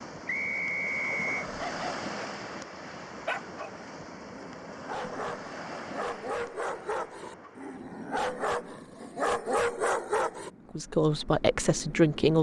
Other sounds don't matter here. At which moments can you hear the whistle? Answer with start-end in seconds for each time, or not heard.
0.2-1.4.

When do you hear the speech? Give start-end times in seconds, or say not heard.
10.8-12.3.